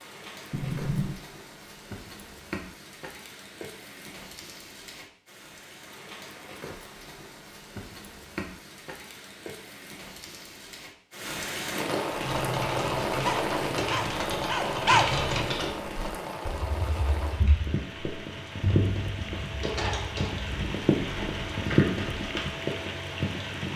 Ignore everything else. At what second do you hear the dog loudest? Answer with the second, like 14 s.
15 s.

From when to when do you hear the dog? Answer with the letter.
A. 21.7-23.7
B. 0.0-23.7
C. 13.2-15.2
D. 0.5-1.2
C.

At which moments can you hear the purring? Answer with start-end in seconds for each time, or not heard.
not heard.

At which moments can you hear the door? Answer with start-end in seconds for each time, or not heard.
0.5-1.2.